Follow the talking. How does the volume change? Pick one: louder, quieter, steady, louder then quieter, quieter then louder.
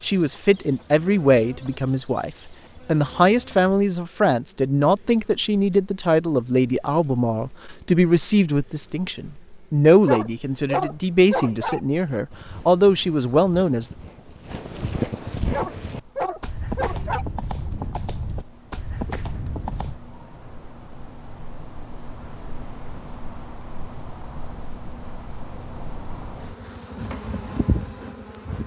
steady.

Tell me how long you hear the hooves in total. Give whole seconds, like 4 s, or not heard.
8 s.